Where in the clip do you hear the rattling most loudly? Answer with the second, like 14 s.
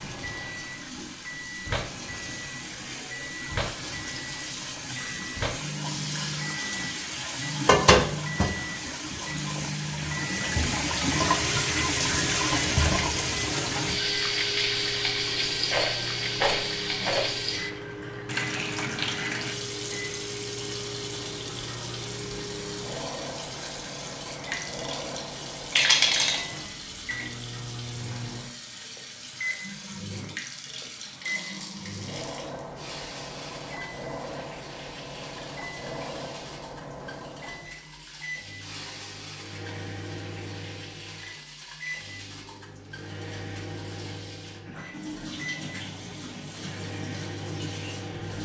26 s.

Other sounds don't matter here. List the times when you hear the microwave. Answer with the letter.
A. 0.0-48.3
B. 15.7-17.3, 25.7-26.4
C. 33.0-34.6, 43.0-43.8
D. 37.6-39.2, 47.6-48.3
A.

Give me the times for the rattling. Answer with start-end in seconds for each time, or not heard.
15.7-17.3, 25.7-26.4.